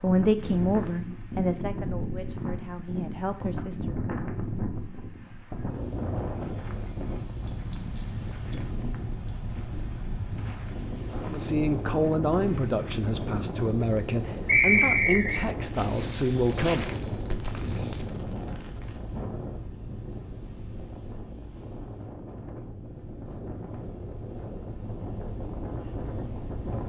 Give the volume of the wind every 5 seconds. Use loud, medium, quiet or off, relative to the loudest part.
loud, loud, loud, loud, medium, loud.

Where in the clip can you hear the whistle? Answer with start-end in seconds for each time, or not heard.
14.4-15.4.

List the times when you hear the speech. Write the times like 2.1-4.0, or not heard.
0.0-4.0, 11.2-16.9.